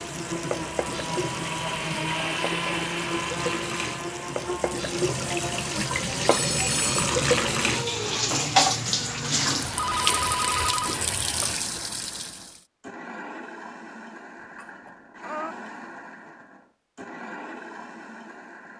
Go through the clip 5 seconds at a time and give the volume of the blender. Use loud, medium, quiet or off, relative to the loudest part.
loud, medium, medium, medium.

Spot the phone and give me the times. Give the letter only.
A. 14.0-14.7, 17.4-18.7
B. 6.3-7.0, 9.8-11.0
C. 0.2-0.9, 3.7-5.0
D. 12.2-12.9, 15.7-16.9
B.